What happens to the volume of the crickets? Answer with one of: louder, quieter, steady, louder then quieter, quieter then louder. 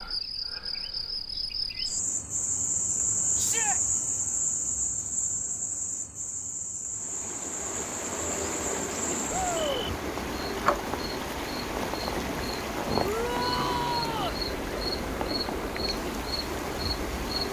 quieter.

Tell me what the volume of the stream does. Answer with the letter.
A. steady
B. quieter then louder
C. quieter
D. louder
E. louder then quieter
A.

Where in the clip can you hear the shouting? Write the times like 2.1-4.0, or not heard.
3.4-3.8, 9.3-9.9, 13.0-14.4.